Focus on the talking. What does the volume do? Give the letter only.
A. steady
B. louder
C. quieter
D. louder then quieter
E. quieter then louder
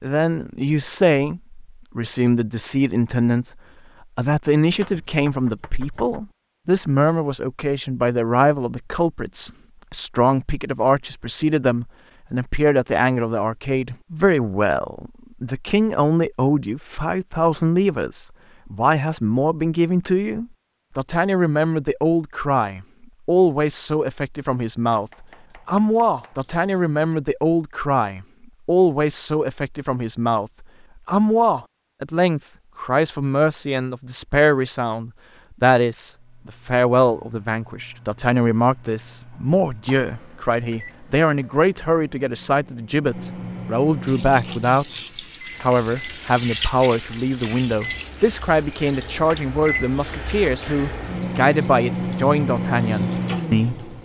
A.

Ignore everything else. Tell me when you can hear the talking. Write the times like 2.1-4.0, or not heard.
0.0-3.5, 4.2-45.0, 45.6-53.9.